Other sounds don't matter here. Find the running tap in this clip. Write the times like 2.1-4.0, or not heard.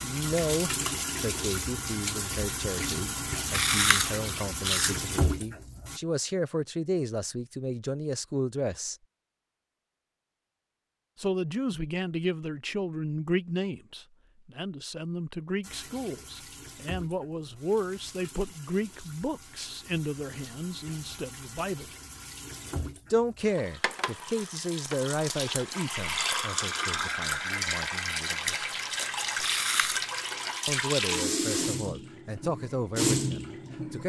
0.0-6.0, 15.6-34.0.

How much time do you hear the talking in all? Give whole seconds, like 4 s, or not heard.
29 s.